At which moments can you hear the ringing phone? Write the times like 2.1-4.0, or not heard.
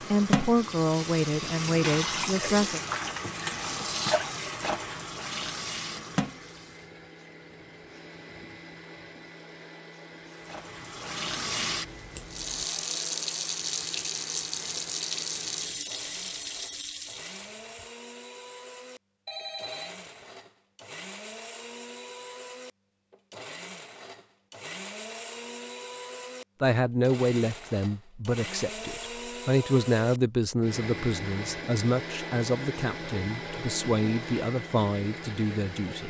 19.2-20.3.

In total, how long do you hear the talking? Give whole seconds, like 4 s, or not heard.
12 s.